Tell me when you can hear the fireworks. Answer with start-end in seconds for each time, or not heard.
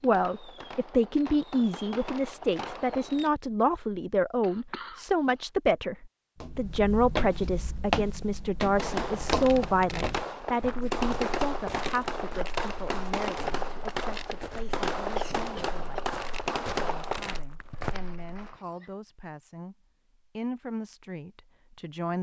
0.0-3.3, 8.8-18.9.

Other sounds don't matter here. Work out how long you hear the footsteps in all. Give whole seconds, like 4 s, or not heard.
12 s.